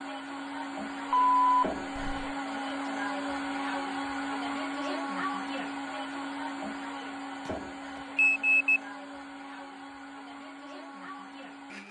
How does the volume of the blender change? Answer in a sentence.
The loudness of the blender goes down.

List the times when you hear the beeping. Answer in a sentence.
The beeping can be heard from 1.1 to 2.4 s and from 7.5 to 8.8 s.